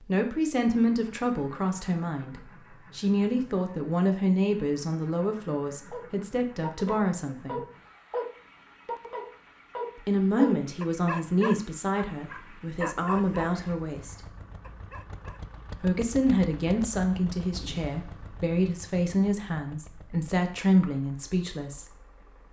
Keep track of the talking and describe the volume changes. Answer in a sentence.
The volume of the talking stays about the same.